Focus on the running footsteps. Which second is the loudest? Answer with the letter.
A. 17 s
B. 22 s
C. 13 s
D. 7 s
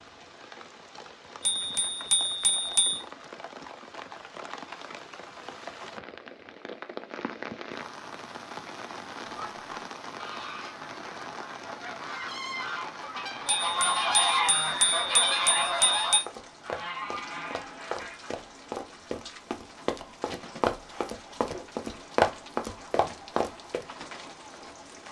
B.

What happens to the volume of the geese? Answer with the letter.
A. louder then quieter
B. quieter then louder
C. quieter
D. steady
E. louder
A.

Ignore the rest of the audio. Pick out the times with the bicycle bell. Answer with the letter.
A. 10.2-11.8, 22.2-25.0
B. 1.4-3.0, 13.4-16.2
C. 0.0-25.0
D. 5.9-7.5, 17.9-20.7
B.